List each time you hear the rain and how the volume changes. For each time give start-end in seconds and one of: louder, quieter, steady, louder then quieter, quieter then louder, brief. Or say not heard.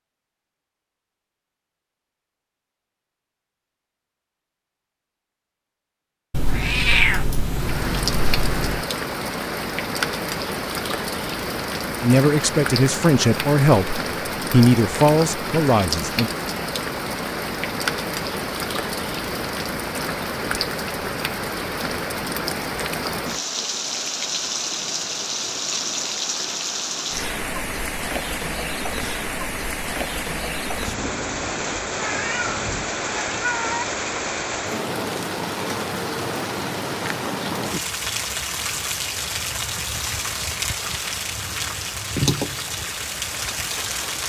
7.3-44.2 steady.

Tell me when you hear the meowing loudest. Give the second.
7 s.